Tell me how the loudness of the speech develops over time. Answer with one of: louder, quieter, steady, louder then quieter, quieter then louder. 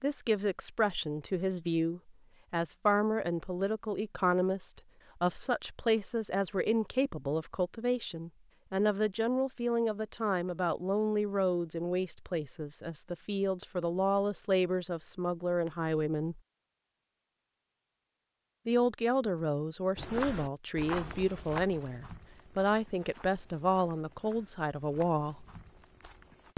steady.